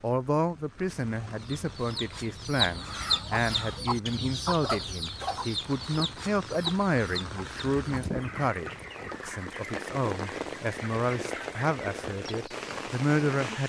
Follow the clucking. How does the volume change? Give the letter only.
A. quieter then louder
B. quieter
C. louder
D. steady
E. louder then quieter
B.